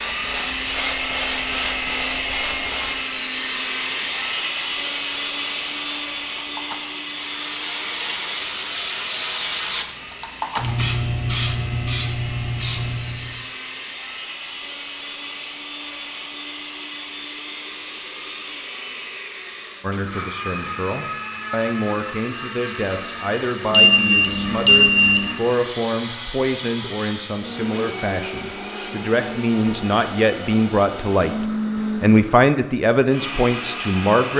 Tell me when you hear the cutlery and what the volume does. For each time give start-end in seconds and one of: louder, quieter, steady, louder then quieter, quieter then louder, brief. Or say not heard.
not heard.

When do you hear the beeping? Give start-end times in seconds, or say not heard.
0.7-2.7, 23.7-25.3.